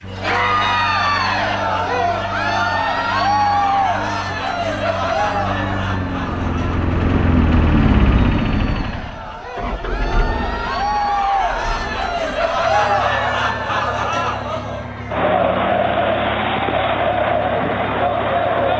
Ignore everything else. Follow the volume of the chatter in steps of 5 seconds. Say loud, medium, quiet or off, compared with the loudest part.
loud, medium, loud, loud.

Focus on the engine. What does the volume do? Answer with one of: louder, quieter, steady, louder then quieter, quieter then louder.
louder then quieter.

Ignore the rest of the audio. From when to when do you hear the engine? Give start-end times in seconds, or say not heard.
0.0-18.7.